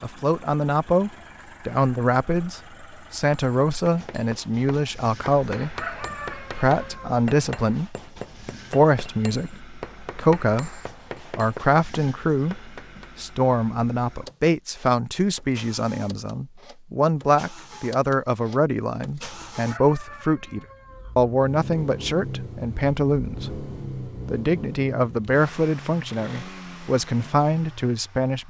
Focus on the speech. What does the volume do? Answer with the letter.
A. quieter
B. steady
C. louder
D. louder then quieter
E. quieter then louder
B.